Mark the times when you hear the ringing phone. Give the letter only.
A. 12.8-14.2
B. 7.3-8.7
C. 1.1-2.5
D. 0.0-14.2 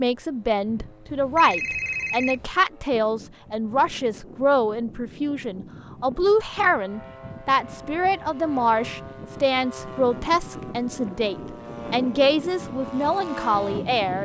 C.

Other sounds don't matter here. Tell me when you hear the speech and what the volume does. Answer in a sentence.
You can hear the speech from 0.0 to 14.2 s, at a steady volume.